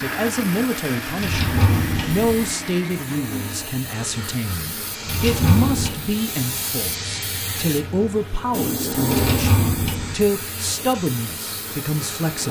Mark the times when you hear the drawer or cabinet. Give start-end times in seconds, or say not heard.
1.2-2.5, 5.0-6.0, 9.1-10.2.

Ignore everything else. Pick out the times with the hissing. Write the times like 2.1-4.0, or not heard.
0.0-12.4.